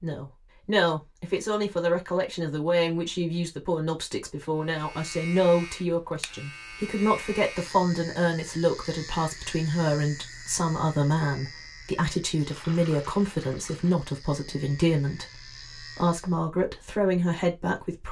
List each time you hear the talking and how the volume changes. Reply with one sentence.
You can hear the talking from 0.0 to 18.0 s, at a steady volume.